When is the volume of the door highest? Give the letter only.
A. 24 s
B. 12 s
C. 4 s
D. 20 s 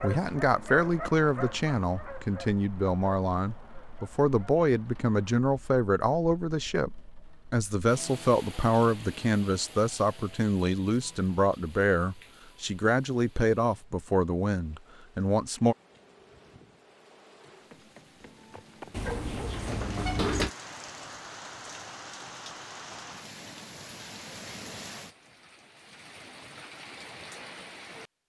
D.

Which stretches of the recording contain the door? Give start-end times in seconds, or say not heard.
18.9-20.5.